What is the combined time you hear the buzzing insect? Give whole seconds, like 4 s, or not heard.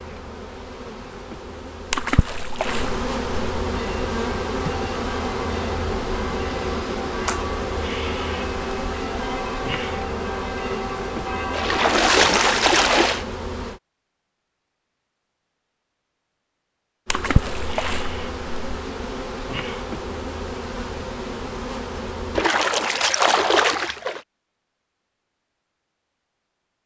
19 s.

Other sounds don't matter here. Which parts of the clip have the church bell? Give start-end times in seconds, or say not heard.
3.6-11.9.